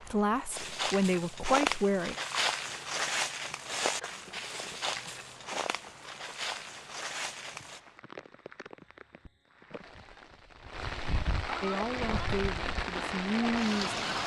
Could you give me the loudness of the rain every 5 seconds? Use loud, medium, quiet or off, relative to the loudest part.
quiet, quiet, loud.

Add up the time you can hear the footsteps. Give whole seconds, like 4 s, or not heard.
7 s.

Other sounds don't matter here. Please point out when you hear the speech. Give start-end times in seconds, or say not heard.
0.0-2.1, 11.6-14.0.